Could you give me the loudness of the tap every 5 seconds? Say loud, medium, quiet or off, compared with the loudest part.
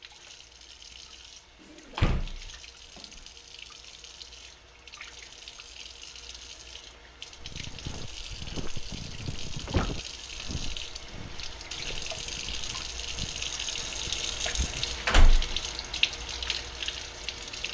quiet, medium, loud, loud.